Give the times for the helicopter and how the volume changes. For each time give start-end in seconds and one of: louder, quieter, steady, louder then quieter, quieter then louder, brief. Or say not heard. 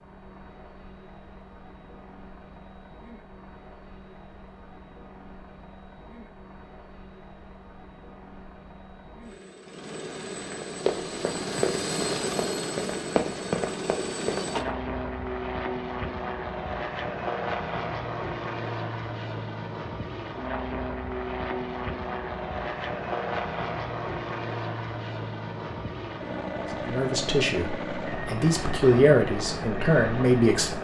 0.0-30.8 louder.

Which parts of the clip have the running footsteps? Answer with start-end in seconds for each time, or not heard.
10.5-14.8.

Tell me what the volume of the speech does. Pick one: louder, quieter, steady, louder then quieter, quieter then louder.
quieter then louder.